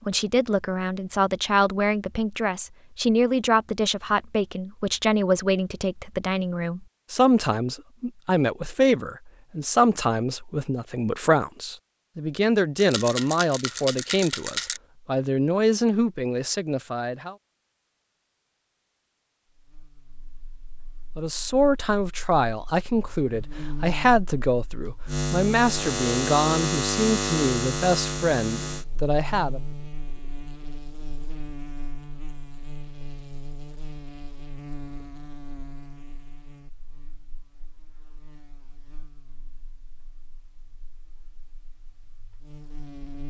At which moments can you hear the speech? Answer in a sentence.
You can hear the speech from 0.1 to 17.4 s and from 21.1 to 29.6 s.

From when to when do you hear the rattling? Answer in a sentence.
The rattling can be heard from 12.8 to 14.8 s.